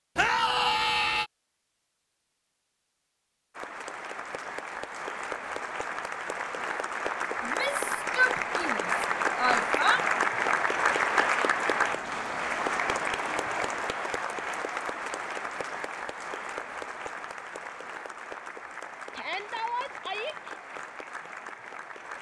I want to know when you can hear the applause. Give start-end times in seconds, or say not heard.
3.5-22.1.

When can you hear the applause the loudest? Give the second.
11 s.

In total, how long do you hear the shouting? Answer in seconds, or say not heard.
5 s.